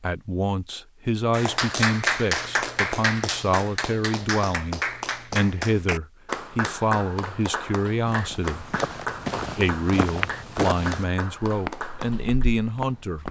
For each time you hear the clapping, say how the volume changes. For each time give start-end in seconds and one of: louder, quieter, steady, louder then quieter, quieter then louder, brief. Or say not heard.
1.3-12.4 quieter.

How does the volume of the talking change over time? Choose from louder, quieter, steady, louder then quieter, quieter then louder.
steady.